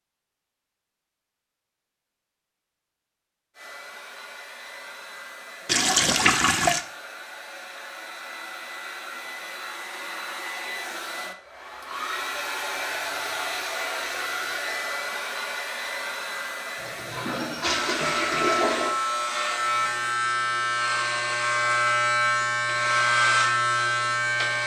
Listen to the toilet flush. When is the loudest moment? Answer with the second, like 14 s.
6 s.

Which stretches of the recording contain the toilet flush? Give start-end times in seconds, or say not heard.
5.7-6.8, 16.8-18.9.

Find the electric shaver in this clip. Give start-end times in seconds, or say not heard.
17.8-24.6.